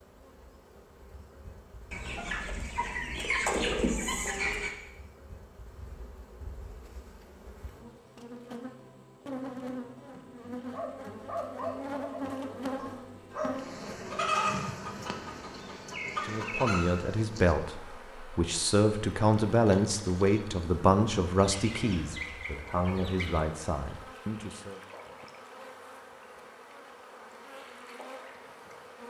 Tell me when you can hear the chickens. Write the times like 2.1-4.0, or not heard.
1.9-4.7, 14.1-16.9, 21.4-23.4.